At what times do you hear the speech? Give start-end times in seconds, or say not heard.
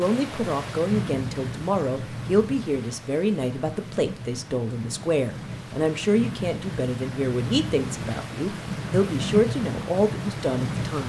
0.0-11.0.